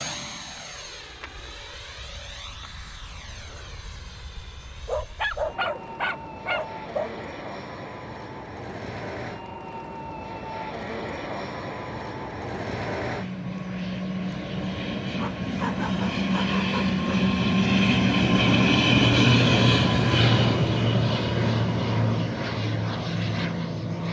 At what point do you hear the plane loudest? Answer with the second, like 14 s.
19 s.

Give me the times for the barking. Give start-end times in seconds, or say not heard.
4.8-7.2, 15.2-17.1.